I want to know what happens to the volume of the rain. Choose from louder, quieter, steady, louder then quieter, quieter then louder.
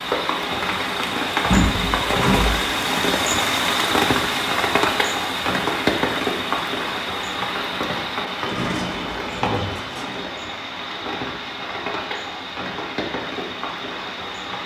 quieter.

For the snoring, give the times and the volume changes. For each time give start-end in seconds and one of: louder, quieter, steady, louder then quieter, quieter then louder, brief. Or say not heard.
not heard.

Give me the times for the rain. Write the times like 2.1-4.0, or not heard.
0.0-14.6.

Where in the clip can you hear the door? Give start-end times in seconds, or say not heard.
1.4-2.5, 8.4-10.3.